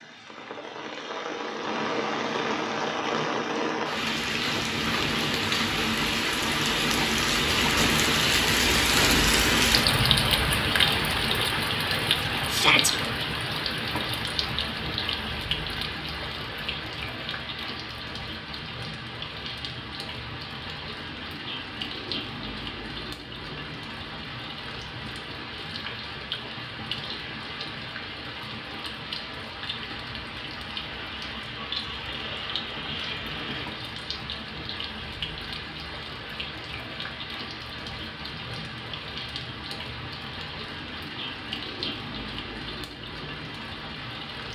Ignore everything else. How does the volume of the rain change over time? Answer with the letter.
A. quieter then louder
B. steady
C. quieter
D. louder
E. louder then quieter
C.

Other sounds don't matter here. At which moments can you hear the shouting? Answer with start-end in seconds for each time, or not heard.
12.5-12.9.